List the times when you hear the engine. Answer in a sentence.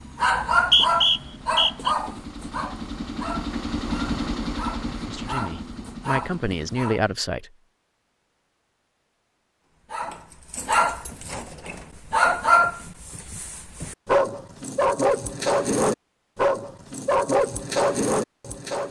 The engine can be heard from 0.0 to 7.3 s.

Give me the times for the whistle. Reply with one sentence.
You can hear the whistle from 0.3 to 1.9 s.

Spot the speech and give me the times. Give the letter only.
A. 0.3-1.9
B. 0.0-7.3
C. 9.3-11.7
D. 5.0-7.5
D.